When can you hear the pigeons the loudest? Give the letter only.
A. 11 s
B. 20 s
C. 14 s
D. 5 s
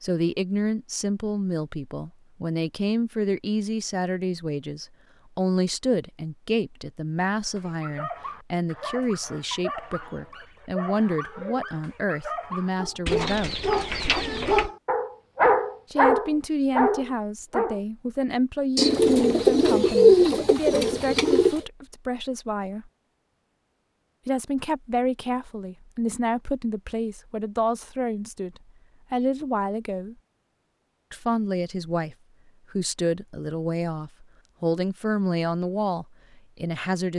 B.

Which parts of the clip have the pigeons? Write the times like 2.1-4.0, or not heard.
13.1-14.7, 18.8-21.6.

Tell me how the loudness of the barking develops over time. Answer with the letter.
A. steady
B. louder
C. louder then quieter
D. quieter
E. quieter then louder
B.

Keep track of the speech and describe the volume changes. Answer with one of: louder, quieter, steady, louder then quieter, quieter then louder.
steady.